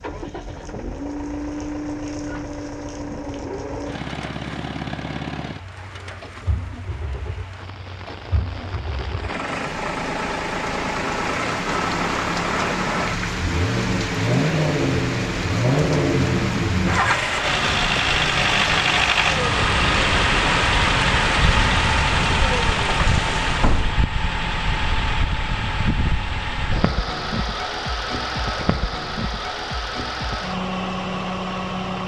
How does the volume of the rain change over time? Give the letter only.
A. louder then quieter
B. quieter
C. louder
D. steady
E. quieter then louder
C.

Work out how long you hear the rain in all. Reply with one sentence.
The rain can be heard for 24 seconds in total.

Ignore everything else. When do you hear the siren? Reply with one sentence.
You can't hear the siren here.